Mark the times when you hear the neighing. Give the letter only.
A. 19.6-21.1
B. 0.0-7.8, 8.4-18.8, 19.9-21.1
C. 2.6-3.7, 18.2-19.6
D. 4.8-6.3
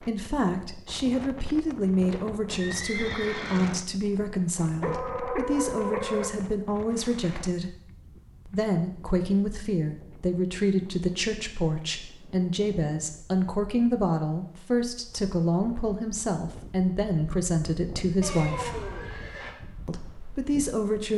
C.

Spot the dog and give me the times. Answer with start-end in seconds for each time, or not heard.
4.8-6.3.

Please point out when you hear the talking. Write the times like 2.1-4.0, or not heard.
0.0-7.8, 8.4-18.8, 19.9-21.1.